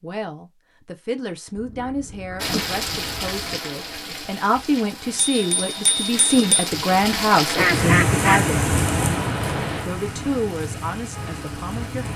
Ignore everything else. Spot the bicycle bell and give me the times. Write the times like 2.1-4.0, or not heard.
5.2-6.7.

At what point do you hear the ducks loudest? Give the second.
8 s.